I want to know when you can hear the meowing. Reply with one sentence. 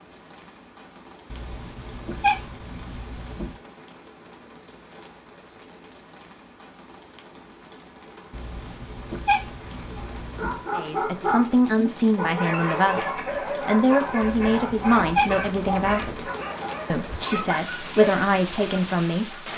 You can hear the meowing from 1.3 to 3.5 s, from 8.3 to 10.7 s and from 14.2 to 16.2 s.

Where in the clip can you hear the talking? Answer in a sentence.
The talking can be heard from 10.7 to 16.3 s and from 16.9 to 19.4 s.